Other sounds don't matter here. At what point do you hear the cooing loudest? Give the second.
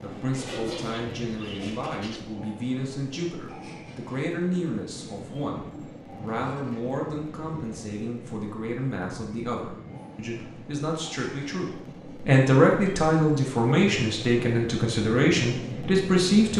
1 s.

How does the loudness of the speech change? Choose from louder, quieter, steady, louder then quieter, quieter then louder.
louder.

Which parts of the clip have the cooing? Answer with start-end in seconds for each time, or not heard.
0.5-2.2.